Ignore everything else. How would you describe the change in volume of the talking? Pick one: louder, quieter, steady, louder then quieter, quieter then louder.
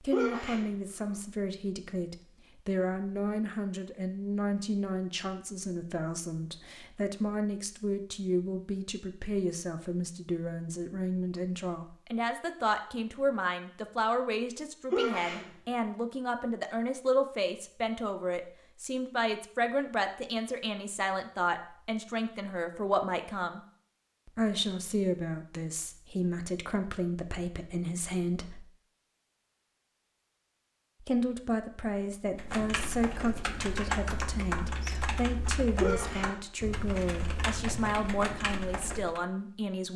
steady.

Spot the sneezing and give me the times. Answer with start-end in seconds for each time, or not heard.
0.1-0.7, 14.9-15.4, 35.8-36.3.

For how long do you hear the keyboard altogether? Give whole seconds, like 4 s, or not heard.
7 s.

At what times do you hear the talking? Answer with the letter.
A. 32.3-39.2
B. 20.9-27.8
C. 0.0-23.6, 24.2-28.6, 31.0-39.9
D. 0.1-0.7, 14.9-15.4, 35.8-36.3
C.